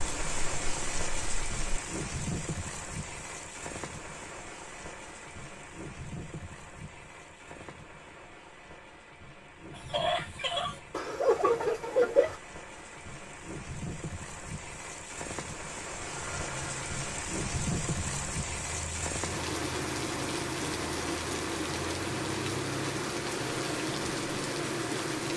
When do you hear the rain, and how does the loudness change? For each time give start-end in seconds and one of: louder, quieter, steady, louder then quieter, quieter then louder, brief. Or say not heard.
0.0-25.3 quieter then louder.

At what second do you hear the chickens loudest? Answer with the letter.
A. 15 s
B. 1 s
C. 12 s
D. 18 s
C.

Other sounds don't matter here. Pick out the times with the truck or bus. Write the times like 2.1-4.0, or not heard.
15.9-25.3.